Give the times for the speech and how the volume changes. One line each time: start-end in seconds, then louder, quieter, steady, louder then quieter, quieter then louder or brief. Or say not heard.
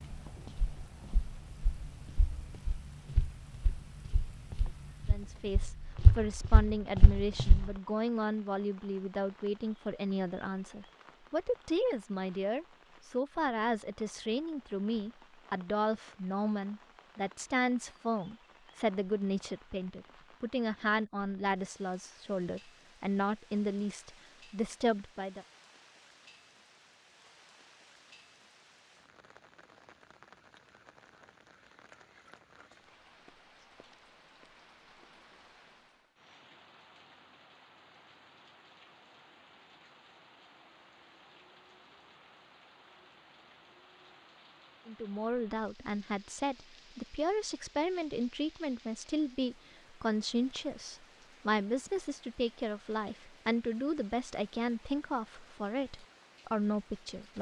5.0-25.4 steady
44.9-57.3 steady.